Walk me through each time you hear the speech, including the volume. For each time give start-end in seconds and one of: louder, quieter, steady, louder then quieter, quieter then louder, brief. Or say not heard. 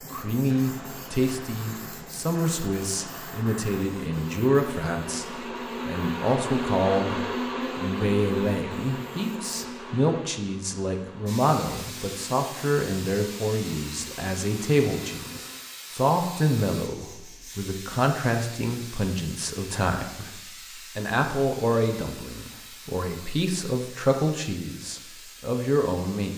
0.1-26.3 steady.